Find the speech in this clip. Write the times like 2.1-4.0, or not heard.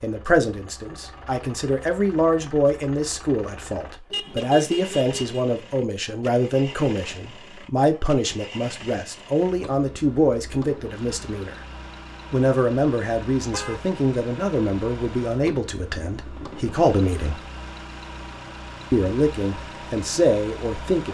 0.0-11.6, 12.3-17.4, 18.9-21.1.